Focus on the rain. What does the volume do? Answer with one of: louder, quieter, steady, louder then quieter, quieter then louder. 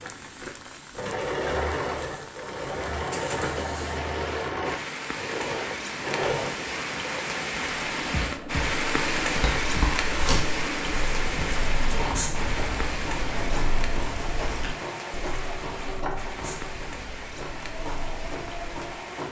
louder then quieter.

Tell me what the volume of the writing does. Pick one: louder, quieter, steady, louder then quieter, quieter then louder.
quieter.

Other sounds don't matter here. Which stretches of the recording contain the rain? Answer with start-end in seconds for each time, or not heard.
0.0-19.2.